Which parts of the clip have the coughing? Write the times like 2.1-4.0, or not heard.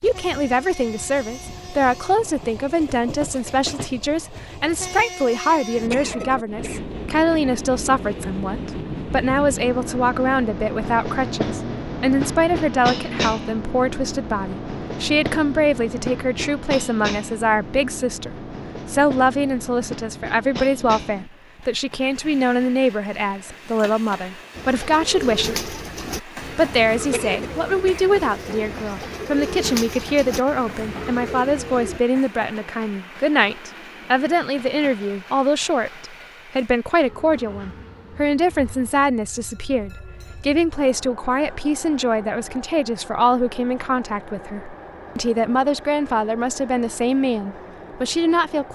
5.9-7.0, 27.1-28.1.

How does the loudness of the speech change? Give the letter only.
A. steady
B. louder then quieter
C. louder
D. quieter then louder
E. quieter
A.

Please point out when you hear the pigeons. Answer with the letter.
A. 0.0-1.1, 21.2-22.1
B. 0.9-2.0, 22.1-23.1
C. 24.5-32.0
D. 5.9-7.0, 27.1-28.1
C.